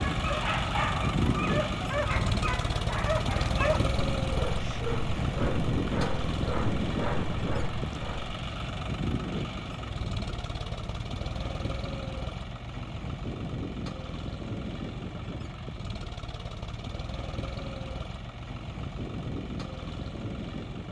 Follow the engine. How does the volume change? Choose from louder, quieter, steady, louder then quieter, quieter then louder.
quieter.